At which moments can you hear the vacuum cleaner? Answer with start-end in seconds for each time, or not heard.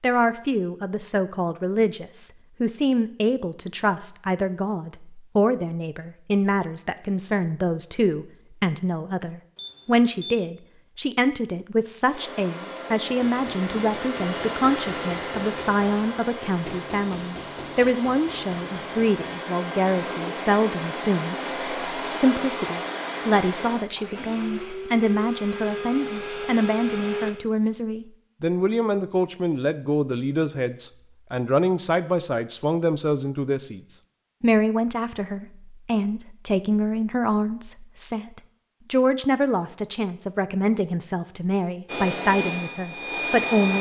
12.1-27.4, 41.9-43.7.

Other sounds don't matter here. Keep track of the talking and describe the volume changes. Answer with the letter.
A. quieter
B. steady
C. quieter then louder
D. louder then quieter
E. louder
B.